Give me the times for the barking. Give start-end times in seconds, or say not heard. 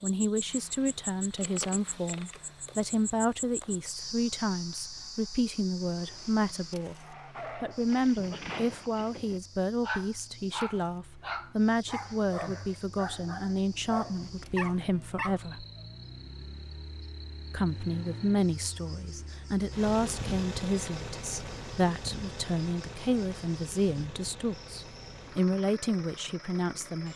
7.0-15.8.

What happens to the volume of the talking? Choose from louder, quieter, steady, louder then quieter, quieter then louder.
steady.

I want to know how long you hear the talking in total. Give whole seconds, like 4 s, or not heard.
25 s.